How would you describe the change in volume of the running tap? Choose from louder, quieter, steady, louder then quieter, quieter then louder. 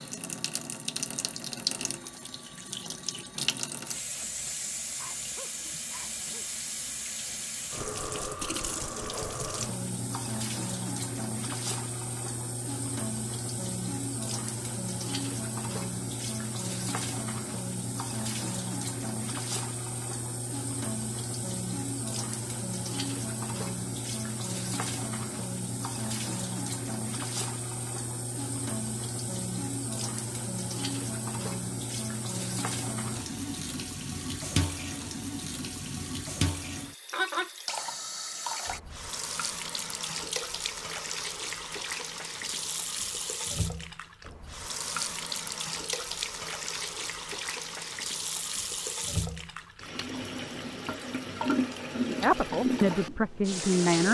steady.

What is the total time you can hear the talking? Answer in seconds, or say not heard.
2 s.